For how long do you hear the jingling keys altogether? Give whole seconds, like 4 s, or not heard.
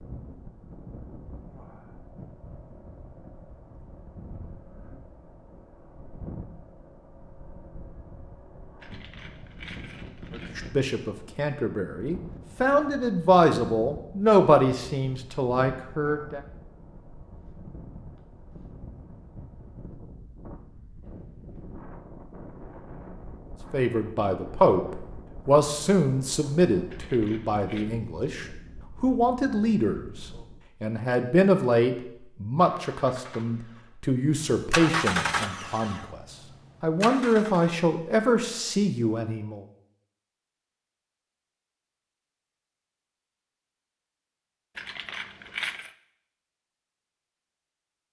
4 s.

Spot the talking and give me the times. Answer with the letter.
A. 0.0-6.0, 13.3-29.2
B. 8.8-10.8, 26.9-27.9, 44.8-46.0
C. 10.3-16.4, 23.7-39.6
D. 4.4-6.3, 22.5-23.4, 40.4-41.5
C.